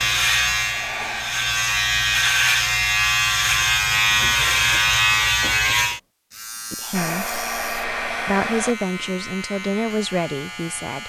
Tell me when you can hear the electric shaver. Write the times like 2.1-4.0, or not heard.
0.0-11.0.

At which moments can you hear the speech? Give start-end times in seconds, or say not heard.
6.7-7.3, 8.2-11.0.